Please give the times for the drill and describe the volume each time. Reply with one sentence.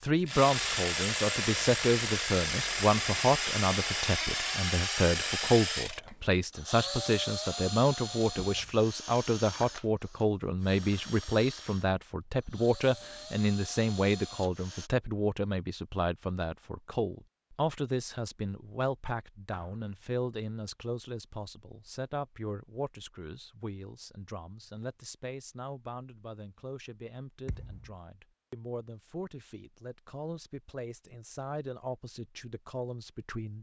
The drill can be heard from 0.2 to 14.9 s, getting quieter.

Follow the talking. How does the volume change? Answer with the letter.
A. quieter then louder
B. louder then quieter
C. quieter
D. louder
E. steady
C.